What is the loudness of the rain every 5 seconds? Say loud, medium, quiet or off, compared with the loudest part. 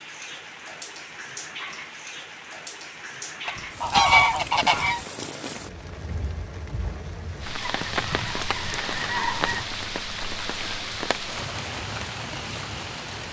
medium, loud, loud.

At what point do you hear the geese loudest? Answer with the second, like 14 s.
4 s.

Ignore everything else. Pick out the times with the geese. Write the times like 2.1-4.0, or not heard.
3.5-5.0, 7.7-9.7.